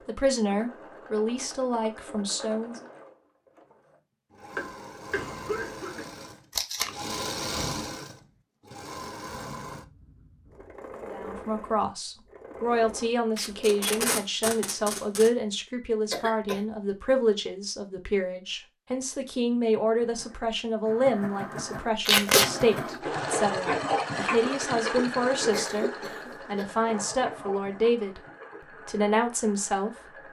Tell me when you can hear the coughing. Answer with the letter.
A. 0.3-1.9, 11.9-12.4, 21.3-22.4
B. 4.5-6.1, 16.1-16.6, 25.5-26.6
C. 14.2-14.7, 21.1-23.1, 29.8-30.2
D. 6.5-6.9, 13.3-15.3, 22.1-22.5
B.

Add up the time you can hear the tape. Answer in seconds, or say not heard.
3 s.